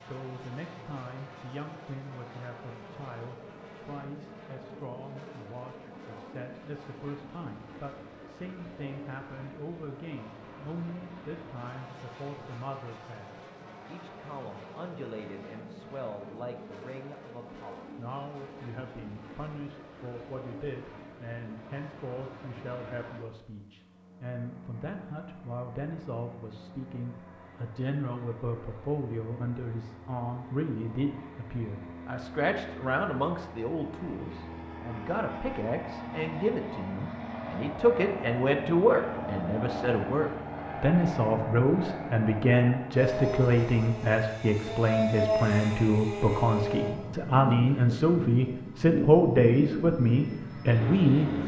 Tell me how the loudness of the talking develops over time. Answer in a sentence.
The loudness of the talking goes up.